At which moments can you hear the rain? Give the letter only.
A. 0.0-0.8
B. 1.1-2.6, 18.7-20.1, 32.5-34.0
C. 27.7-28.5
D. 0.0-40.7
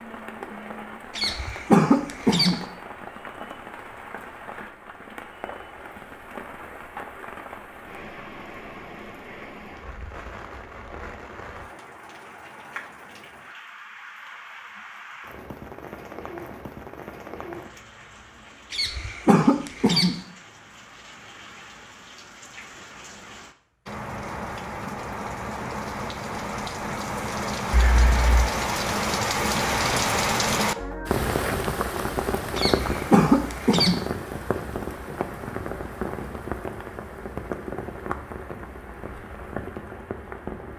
D.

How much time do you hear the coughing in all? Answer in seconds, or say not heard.
4 s.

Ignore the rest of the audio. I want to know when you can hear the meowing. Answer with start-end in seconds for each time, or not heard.
27.7-28.5.